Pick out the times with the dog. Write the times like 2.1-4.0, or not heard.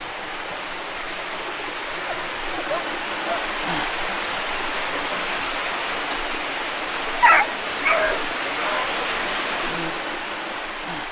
2.0-3.5, 7.2-8.8.